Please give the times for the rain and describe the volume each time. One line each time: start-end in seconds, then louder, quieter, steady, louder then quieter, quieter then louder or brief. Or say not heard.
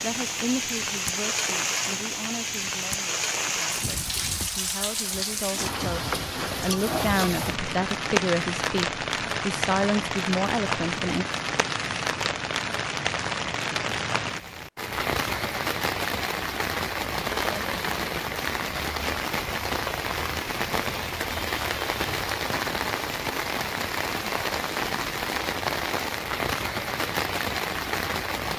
0.0-28.5 steady.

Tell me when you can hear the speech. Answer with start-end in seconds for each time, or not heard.
0.0-11.2.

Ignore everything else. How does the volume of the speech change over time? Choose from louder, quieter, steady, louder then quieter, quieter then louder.
quieter then louder.